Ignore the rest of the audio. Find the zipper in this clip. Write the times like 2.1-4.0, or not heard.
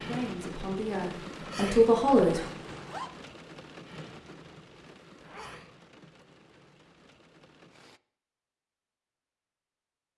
2.2-3.1, 5.2-5.7.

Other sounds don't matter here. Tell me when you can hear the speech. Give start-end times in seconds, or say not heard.
0.0-2.5.